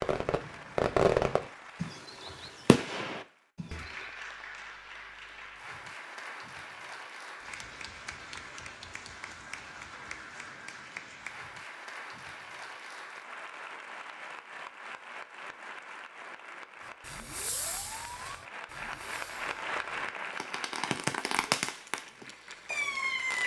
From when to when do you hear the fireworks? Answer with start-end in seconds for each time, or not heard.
0.0-4.1, 17.1-23.4.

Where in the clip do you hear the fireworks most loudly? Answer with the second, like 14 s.
1 s.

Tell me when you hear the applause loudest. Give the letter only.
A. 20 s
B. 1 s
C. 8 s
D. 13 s
A.